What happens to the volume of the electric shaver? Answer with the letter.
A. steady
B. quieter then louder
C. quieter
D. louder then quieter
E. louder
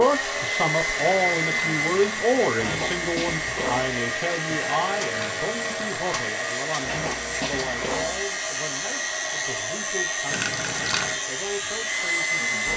A.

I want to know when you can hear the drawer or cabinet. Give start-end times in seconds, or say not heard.
2.5-3.9, 6.8-8.3.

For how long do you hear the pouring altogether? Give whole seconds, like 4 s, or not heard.
4 s.